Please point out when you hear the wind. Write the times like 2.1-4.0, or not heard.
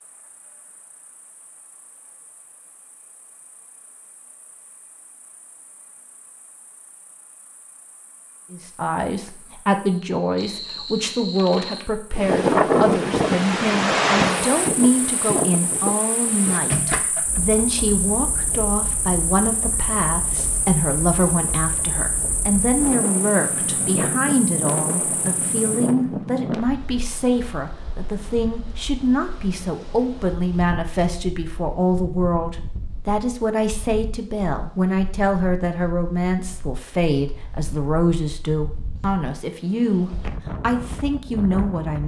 12.2-42.0.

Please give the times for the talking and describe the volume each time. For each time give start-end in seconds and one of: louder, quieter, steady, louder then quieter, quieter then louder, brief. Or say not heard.
8.5-42.0 steady.